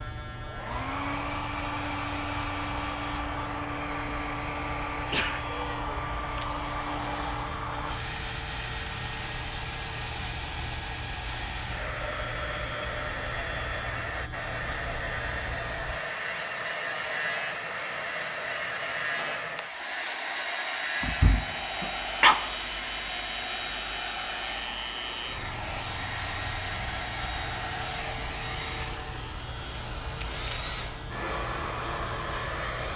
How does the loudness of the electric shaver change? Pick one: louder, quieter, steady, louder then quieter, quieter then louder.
steady.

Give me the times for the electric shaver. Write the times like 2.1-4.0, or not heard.
0.0-32.9.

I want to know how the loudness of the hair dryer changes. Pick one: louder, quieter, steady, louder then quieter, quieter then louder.
steady.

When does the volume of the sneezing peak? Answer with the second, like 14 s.
22 s.